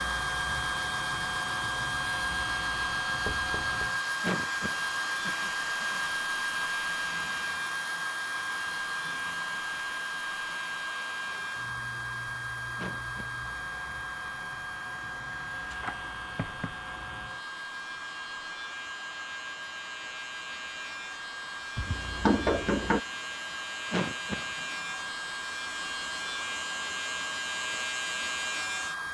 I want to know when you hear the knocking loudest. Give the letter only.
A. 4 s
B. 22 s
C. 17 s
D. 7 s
B.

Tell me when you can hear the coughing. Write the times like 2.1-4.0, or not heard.
4.2-6.0, 12.8-13.4, 23.9-24.5.